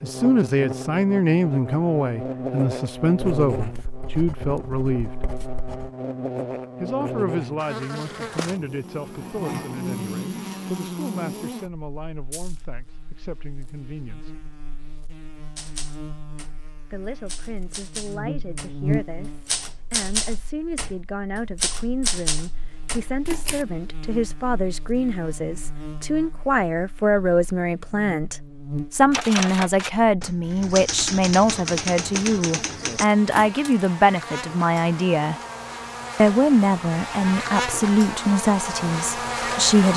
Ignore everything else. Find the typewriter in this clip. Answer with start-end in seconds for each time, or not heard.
15.6-23.6, 29.1-33.5.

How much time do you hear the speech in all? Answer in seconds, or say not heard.
35 s.